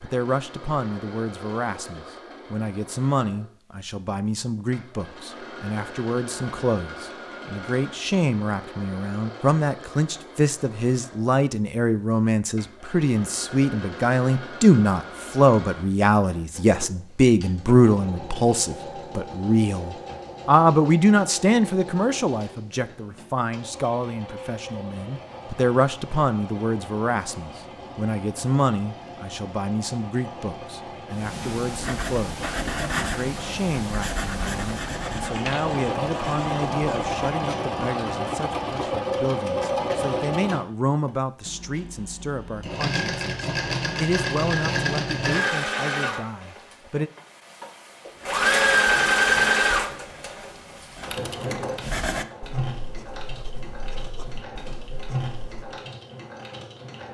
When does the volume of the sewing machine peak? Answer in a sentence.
The loudest moment of the sewing machine is at 49 seconds.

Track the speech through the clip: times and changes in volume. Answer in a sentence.
The speech can be heard from 0.0 to 47.1 s, getting louder then quieter.